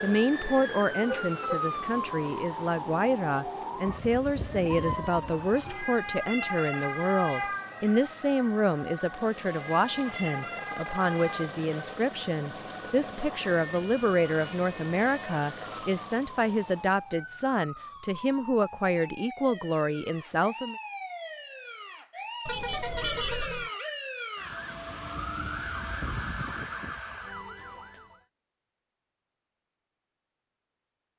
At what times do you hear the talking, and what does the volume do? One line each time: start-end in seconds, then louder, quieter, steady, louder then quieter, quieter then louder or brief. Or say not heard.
0.0-20.8 steady.